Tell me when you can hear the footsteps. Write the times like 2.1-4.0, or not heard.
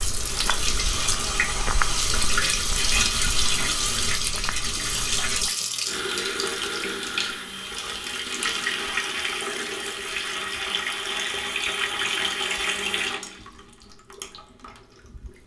0.0-5.5.